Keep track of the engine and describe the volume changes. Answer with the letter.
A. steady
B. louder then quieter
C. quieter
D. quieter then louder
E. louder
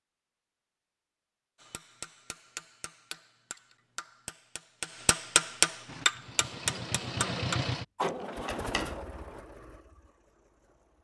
B.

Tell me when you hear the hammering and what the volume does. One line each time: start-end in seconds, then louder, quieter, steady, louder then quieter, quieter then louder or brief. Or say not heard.
1.6-8.9 louder then quieter.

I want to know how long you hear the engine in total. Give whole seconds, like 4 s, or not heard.
5 s.